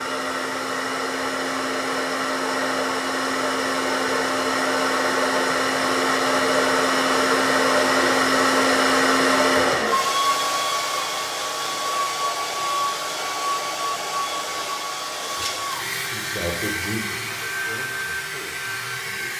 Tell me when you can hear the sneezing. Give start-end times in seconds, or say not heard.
not heard.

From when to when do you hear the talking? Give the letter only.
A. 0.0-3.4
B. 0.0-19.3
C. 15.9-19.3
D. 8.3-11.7
C.